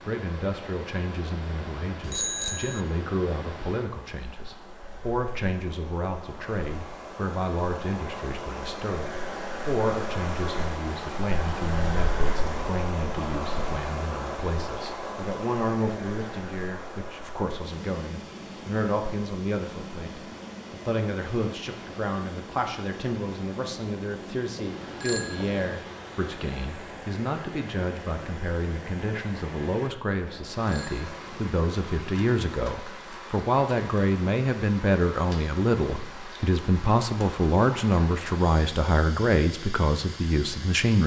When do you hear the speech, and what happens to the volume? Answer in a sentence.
You can hear the speech from 0.1 to 41.0 s, getting louder.